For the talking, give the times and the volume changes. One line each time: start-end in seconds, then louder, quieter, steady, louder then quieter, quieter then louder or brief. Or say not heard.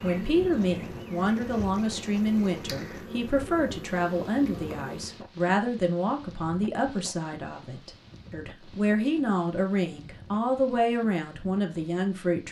0.0-12.4 steady.